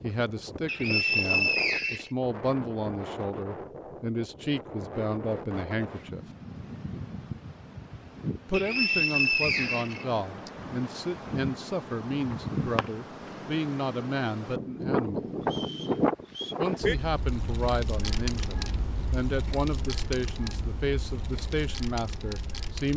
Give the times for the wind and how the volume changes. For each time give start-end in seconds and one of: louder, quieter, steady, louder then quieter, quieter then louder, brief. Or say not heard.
0.0-22.9 louder then quieter.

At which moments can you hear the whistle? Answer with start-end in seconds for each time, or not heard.
0.7-2.1, 8.5-10.5, 15.4-16.6.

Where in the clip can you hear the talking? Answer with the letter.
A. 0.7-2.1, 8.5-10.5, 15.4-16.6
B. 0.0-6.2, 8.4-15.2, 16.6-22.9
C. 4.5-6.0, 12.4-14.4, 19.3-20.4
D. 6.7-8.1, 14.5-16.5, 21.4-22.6
B.